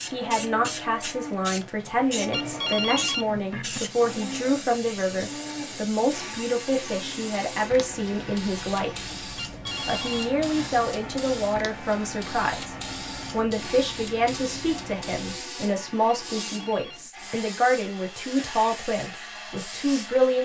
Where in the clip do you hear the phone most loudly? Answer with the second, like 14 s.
3 s.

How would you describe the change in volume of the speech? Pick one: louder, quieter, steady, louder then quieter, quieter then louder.
steady.